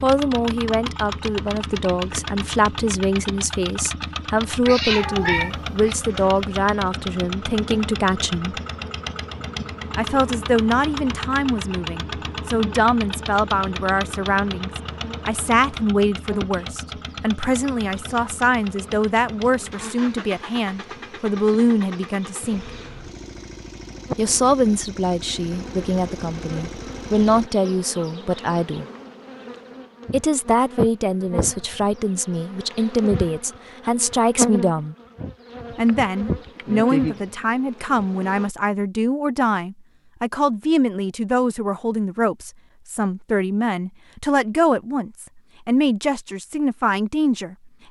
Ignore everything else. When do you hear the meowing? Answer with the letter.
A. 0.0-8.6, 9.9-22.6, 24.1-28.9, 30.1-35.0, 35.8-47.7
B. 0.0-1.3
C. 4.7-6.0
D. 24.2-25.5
C.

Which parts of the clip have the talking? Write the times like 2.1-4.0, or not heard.
0.0-8.6, 9.9-22.6, 24.1-28.9, 30.1-35.0, 35.8-47.7.